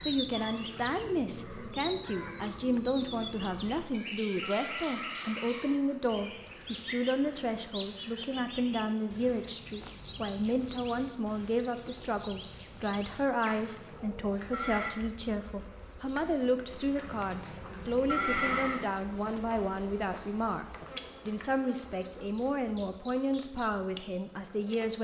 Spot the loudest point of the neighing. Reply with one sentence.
The volume of the neighing peaks at 18 seconds.